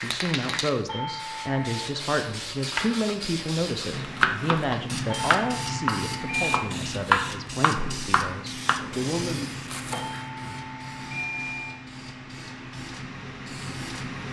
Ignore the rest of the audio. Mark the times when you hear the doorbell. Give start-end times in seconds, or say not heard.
0.8-1.9, 5.0-6.6, 9.9-11.8.